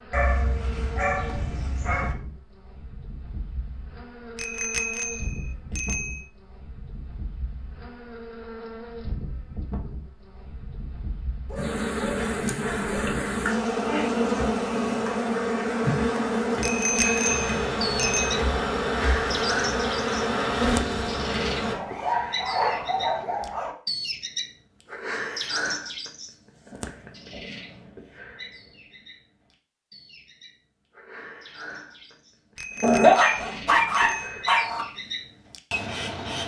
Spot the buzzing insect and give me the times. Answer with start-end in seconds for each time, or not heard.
0.0-21.8.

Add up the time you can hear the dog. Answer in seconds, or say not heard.
8 s.